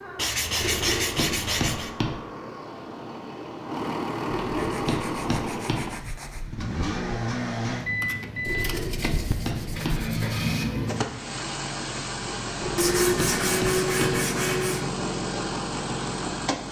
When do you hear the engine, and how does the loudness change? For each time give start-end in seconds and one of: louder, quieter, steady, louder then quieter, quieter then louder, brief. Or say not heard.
0.0-16.6 louder.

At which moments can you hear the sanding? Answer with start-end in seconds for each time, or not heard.
0.1-1.9, 4.5-6.5, 8.4-10.2, 12.8-14.8.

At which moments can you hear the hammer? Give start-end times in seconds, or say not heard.
0.6-2.1, 4.2-5.8, 8.4-10.0, 12.6-14.2.